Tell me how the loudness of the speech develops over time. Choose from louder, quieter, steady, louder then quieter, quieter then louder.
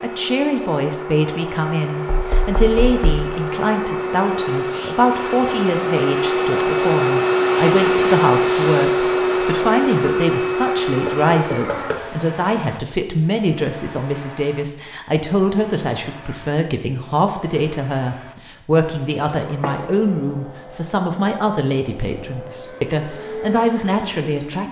steady.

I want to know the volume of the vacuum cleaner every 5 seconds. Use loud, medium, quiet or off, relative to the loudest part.
medium, loud, medium, quiet, quiet.